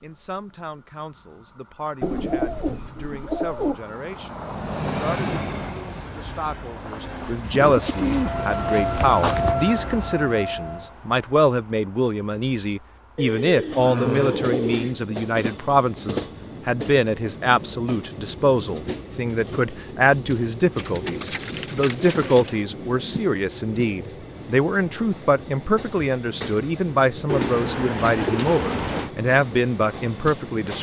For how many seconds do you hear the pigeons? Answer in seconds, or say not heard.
9 s.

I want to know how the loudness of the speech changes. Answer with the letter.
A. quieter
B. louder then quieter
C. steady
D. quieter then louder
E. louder
E.